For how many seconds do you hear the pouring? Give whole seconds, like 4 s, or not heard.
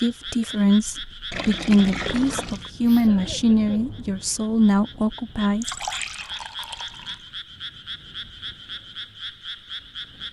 3 s.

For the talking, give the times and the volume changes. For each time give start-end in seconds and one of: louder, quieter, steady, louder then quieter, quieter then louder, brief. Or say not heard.
0.0-5.7 steady.